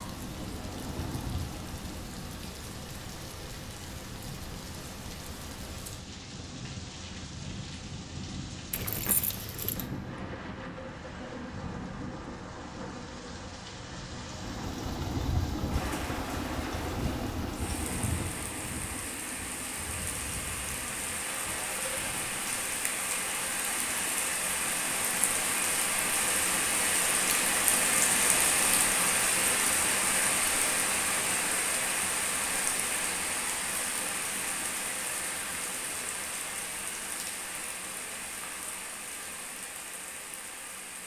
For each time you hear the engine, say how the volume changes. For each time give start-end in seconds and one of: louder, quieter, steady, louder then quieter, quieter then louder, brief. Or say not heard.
0.2-2.0 brief
14.2-22.6 quieter.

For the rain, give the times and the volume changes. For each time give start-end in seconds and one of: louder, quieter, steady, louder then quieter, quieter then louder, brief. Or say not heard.
0.0-41.0 louder then quieter.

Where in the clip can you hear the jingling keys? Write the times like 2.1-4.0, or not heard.
8.7-9.8.